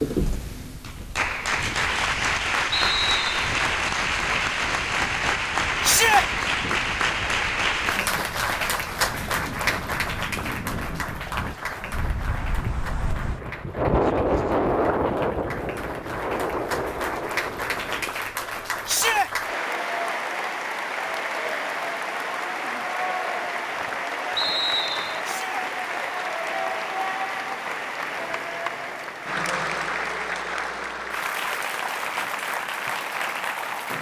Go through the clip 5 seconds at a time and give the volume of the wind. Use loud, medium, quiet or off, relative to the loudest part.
quiet, quiet, loud, loud, off, off, off.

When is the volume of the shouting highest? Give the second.
6 s.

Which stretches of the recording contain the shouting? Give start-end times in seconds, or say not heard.
5.8-6.2, 18.9-19.3, 25.2-25.6.